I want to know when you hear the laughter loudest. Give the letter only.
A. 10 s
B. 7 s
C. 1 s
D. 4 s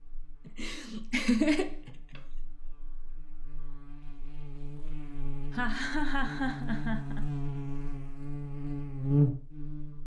C.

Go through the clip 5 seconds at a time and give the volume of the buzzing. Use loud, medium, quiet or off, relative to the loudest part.
quiet, loud.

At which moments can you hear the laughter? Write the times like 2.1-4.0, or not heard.
0.5-2.2, 5.5-7.2.